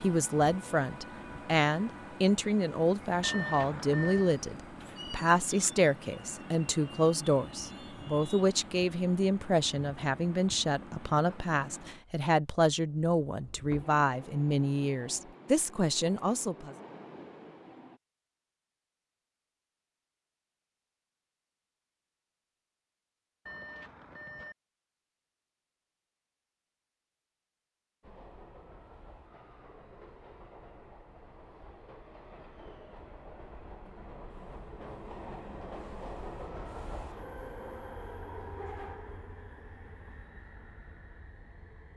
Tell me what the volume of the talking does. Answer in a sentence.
The loudness of the talking stays about the same.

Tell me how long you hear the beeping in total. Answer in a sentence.
You can hear the beeping for 2 seconds altogether.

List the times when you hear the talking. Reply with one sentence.
You can hear the talking from 0.0 to 16.8 s.